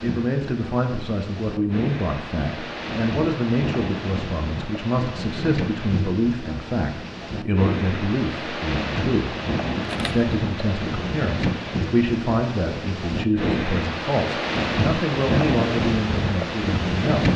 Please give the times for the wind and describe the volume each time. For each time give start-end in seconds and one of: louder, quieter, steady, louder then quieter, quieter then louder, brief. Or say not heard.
0.0-17.3 louder.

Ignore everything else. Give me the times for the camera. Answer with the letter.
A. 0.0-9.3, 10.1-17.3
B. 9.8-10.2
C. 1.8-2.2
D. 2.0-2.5
B.